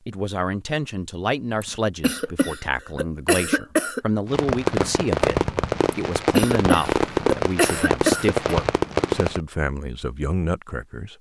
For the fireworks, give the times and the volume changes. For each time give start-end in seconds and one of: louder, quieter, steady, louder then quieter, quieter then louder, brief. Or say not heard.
4.2-9.4 steady.